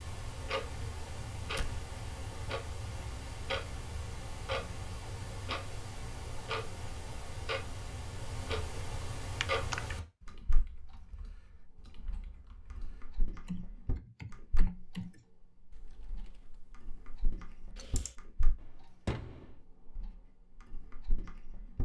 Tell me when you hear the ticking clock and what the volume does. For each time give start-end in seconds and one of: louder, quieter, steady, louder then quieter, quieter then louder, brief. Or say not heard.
0.0-21.8 quieter.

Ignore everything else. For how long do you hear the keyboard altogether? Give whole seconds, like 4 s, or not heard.
9 s.